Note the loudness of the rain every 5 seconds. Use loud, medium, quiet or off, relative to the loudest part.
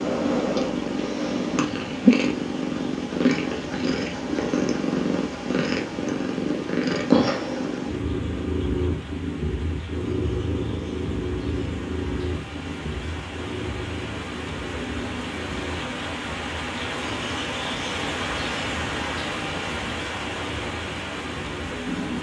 quiet, quiet, medium, loud, loud.